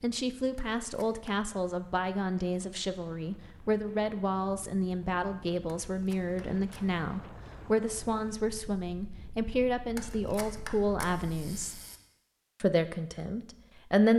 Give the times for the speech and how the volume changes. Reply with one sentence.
The speech can be heard from 0.0 to 11.8 s, at a steady volume; and briefly from 12.6 to 14.1 s.